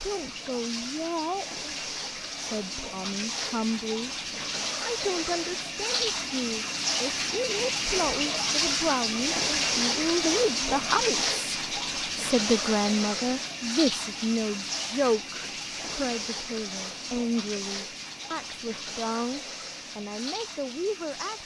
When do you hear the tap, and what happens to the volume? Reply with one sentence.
The tap can be heard from 0.0 to 21.4 s, getting louder then quieter.